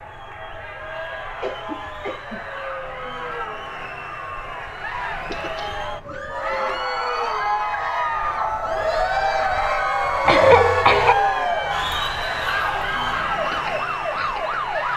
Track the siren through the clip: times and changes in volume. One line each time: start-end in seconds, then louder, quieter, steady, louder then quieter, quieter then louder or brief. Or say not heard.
0.0-14.9 louder.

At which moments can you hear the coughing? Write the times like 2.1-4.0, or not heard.
1.4-2.5, 5.2-6.7, 10.2-11.2.